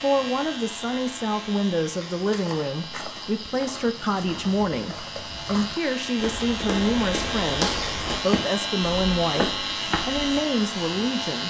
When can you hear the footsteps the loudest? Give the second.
8 s.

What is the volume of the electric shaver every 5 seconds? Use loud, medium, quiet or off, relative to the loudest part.
medium, loud, loud.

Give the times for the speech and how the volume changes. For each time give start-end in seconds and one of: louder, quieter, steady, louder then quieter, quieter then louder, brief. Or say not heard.
0.0-11.4 steady.